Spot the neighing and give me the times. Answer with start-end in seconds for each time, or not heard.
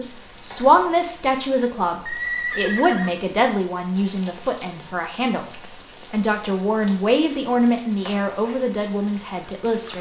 2.0-3.1.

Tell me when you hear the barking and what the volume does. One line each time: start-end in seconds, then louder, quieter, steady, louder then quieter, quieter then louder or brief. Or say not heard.
not heard.